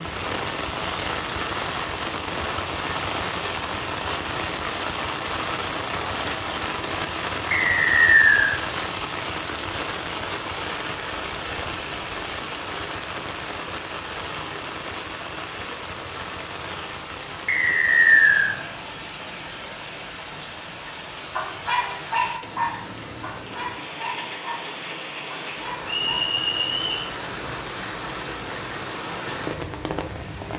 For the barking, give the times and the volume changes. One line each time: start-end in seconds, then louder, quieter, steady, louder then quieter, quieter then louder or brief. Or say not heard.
20.9-26.2 quieter.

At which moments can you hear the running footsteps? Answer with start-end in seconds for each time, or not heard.
not heard.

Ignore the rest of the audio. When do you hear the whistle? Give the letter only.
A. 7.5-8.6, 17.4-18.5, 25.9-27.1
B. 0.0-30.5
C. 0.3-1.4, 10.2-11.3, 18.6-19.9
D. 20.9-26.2
A.